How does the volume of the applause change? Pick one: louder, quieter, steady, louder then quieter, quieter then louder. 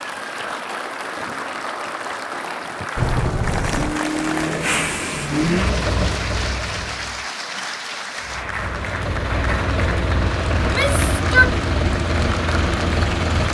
steady.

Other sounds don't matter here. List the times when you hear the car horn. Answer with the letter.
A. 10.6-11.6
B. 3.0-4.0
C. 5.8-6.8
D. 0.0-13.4
B.